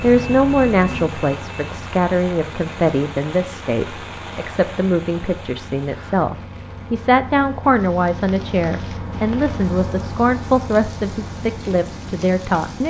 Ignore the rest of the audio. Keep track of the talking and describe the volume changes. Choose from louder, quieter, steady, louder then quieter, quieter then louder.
steady.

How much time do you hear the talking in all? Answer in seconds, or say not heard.
13 s.